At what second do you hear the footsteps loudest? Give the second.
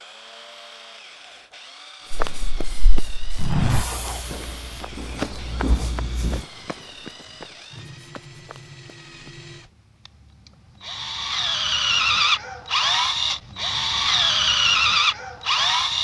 4 s.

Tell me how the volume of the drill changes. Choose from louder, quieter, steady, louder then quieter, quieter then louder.
louder.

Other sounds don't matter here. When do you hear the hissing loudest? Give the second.
6 s.